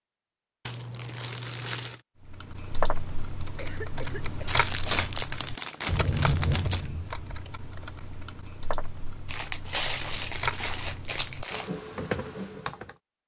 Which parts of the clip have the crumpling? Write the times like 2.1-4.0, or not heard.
0.7-2.0, 4.5-6.8, 9.2-11.7.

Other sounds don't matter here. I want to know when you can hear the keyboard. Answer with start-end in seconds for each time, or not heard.
2.2-12.9.